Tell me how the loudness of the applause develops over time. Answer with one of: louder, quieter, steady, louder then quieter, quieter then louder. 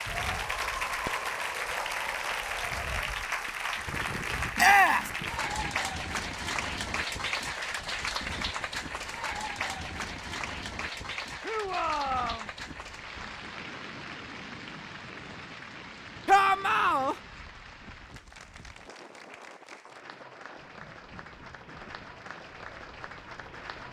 quieter.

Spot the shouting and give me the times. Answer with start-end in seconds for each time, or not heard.
4.5-5.1, 11.4-12.5, 16.2-17.1.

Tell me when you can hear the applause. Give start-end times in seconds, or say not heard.
0.0-23.8.